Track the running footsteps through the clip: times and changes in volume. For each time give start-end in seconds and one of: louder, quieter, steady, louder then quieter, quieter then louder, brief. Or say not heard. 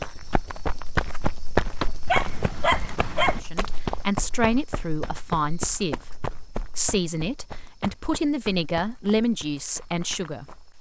0.0-10.7 quieter.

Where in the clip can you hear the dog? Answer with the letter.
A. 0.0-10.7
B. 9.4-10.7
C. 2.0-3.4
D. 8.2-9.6
C.